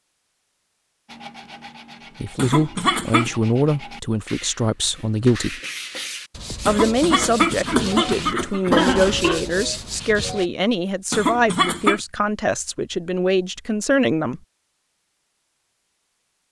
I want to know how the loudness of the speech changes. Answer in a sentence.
The loudness of the speech stays about the same.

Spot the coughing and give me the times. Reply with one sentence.
The coughing can be heard from 2.4 to 3.3 s, from 6.7 to 9.4 s and from 11.1 to 12.0 s.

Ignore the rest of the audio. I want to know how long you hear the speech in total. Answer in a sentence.
You can hear the speech for 11 seconds altogether.